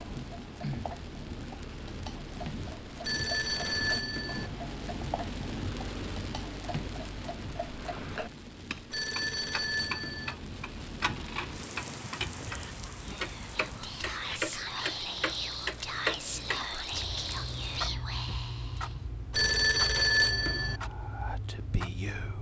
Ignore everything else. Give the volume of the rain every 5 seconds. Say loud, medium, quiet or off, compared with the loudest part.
loud, loud, loud, medium, off.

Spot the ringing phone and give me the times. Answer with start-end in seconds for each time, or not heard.
3.0-4.5, 8.9-10.3, 19.3-20.8.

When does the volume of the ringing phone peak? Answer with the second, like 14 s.
20 s.